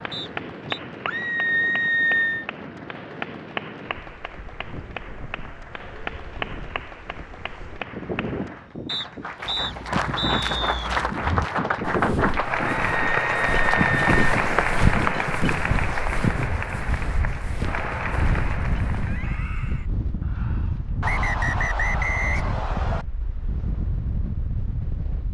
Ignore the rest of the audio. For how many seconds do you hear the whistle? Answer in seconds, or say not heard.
5 s.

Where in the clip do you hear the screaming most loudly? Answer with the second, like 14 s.
2 s.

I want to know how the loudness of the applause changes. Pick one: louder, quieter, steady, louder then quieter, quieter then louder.
louder then quieter.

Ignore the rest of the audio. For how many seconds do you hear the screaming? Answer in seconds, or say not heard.
4 s.